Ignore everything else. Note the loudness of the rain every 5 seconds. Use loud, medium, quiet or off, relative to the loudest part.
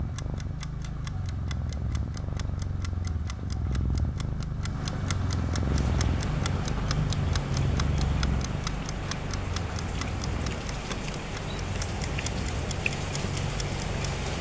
off, loud, loud.